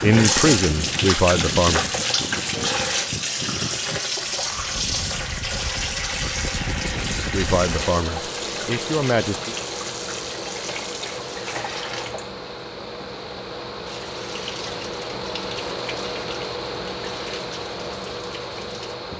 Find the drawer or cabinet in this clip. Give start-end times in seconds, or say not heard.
not heard.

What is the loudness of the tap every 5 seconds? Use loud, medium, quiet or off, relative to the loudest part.
loud, medium, medium, quiet.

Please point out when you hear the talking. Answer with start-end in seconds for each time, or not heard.
0.0-1.9, 7.3-9.6.